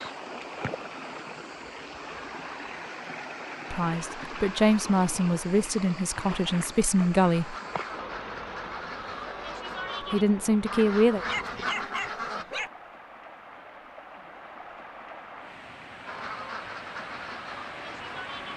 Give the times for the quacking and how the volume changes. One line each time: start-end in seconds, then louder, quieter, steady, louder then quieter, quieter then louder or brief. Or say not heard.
7.3-12.4 louder
16.1-18.5 brief.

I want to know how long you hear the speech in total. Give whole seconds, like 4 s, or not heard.
5 s.